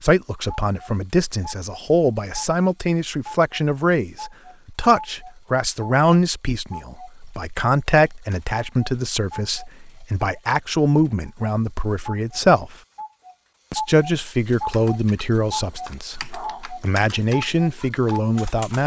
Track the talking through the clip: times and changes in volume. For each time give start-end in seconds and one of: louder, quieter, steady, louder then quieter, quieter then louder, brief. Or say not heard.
0.0-12.8 steady
13.7-18.8 quieter then louder.